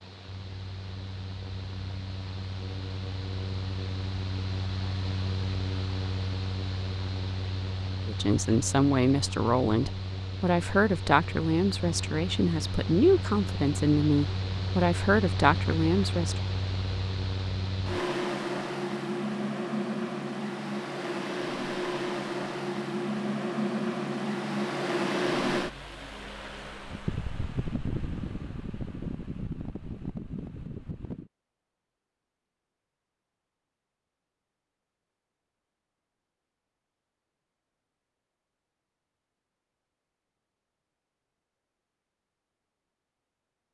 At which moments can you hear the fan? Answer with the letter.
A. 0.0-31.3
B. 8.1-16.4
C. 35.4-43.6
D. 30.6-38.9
A.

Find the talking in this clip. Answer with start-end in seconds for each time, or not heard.
8.1-16.4.